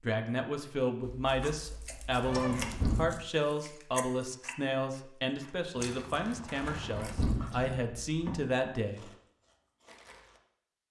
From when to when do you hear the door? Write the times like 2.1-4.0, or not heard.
2.4-3.2, 6.6-8.4.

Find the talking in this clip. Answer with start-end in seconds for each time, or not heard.
0.0-9.1.